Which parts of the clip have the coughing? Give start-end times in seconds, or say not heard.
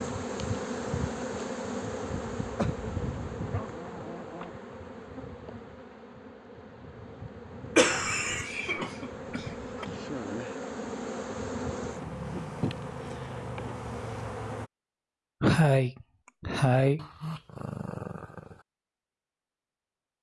2.1-3.5, 7.8-9.8, 15.4-17.0.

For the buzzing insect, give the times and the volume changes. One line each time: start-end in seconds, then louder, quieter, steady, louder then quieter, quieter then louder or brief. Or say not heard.
0.0-14.7 quieter then louder.